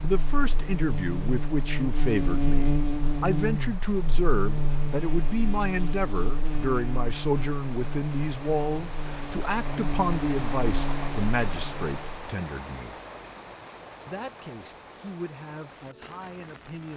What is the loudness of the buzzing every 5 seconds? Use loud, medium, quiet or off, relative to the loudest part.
loud, medium, medium, off.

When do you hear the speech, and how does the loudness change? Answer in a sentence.
The speech can be heard from 0.0 to 13.0 s, at a steady volume; and briefly from 14.1 to 16.9 s.